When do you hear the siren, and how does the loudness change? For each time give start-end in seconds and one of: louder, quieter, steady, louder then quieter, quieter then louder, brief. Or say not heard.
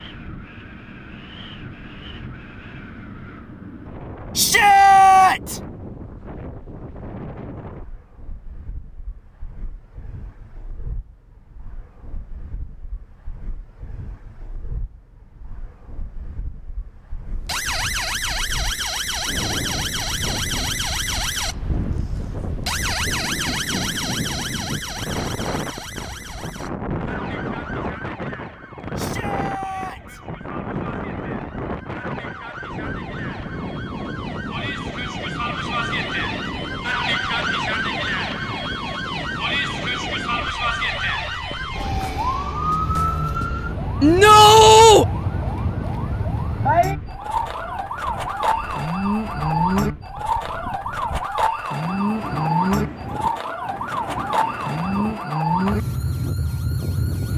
17.3-57.3 quieter then louder.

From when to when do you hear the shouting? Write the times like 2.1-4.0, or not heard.
4.3-5.6, 28.9-30.2, 44.0-45.0.